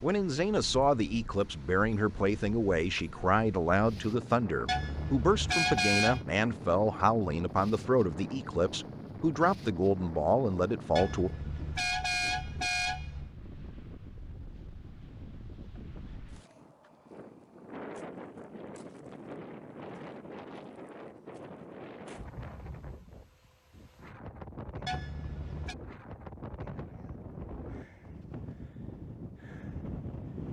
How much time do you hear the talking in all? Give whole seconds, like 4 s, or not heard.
11 s.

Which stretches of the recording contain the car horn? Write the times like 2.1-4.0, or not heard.
4.7-6.2, 10.9-13.3, 24.9-25.8.